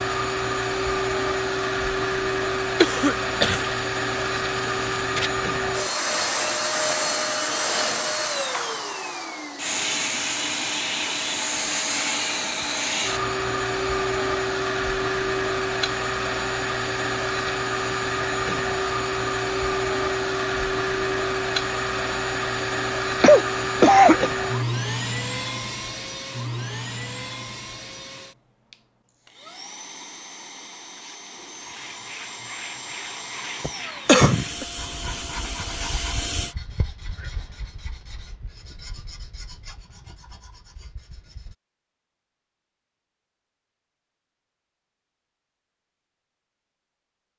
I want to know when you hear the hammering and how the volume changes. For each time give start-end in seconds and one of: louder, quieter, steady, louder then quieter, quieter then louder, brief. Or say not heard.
not heard.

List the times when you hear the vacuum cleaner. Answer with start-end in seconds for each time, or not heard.
0.0-36.5.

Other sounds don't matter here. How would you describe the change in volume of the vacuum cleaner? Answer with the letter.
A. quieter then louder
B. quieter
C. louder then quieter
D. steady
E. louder
B.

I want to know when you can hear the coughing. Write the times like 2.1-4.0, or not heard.
2.8-3.6, 23.2-24.3, 33.6-34.6.